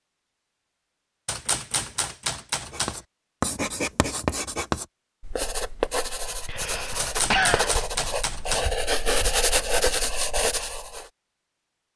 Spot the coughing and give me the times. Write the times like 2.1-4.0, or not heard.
6.5-7.7.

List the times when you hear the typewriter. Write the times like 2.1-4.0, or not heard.
1.2-3.0, 7.0-8.7.